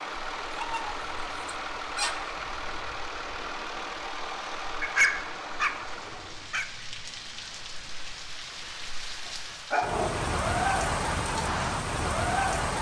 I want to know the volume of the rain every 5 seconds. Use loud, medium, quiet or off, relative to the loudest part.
quiet, quiet, loud.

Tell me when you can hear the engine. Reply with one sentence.
You can hear the engine from 0.0 to 6.5 s.